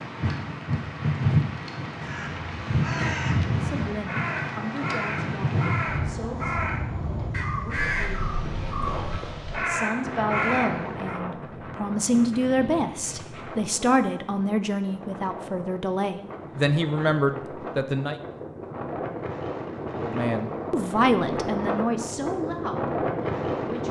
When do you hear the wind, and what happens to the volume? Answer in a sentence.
You can hear the wind from 0.0 to 23.8 s, getting quieter then louder.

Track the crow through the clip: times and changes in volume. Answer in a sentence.
The crow can be heard from 1.9 to 11.2 s, getting louder.